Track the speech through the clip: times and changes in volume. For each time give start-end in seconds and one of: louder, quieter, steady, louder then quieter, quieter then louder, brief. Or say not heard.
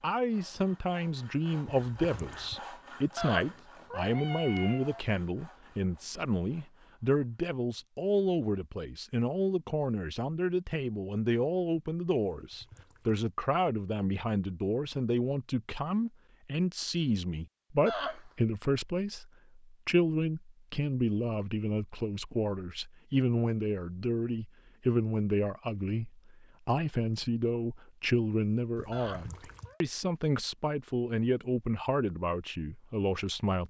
0.0-33.6 steady.